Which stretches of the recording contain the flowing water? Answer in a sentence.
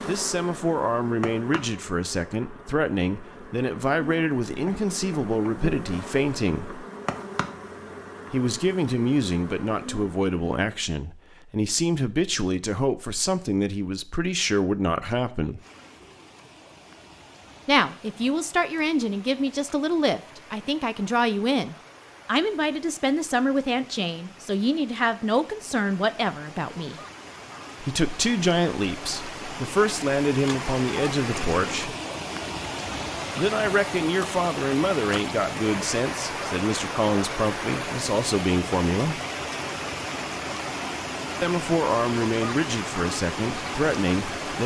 You can hear the flowing water from 15.6 to 44.6 s.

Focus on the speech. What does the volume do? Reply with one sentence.
The volume of the speech stays about the same.